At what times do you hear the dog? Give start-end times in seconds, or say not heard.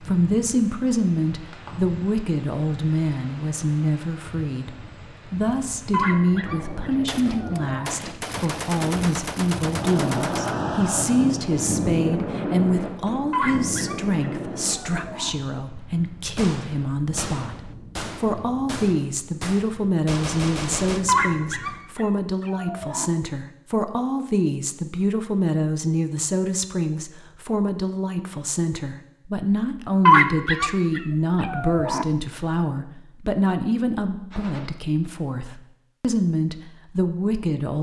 5.9-8.0, 13.3-15.3, 21.1-23.1, 30.1-32.0.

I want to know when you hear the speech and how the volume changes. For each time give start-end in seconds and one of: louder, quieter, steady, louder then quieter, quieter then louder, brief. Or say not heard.
0.0-37.7 steady.